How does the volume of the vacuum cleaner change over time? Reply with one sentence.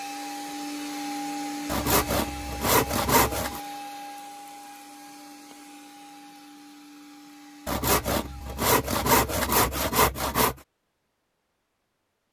The loudness of the vacuum cleaner goes down.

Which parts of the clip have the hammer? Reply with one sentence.
You can't hear the hammer here.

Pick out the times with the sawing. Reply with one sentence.
You can hear the sawing from 1.6 to 3.6 s and from 7.7 to 10.6 s.